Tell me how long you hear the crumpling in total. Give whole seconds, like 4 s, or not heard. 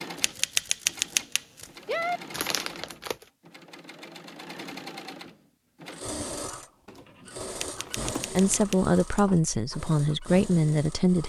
3 s.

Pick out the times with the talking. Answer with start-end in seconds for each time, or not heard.
8.3-11.2.